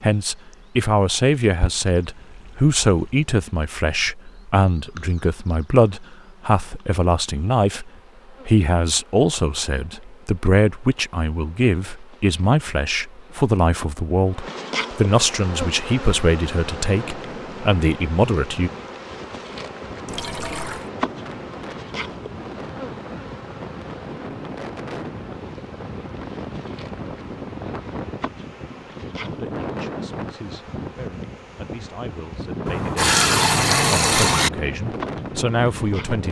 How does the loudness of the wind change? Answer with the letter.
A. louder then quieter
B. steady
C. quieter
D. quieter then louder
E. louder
E.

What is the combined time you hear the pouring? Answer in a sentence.
The pouring can be heard for 4 seconds in total.